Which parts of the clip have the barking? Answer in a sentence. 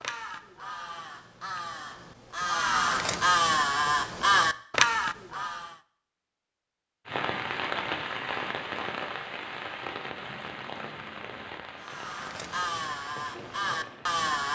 The barking can't be heard in this clip.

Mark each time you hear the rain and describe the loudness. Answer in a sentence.
You can hear the rain from 7.0 to 14.2 s, getting quieter.